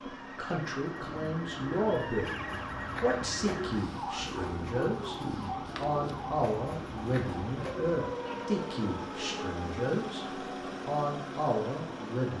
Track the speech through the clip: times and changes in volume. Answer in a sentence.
You can hear the speech briefly from 0.0 to 2.3 s; briefly from 3.0 to 5.2 s; and from 5.8 to 12.3 s, at a steady volume.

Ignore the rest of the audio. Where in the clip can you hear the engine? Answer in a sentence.
The engine can be heard from 0.0 to 12.3 s.